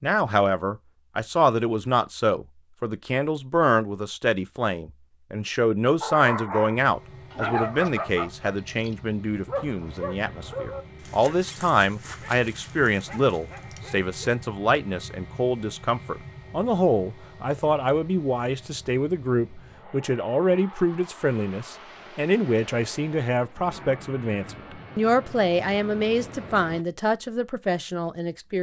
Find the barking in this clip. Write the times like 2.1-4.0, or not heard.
6.0-14.3.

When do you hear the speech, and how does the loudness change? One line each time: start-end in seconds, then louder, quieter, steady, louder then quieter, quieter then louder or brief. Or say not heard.
0.0-28.5 steady.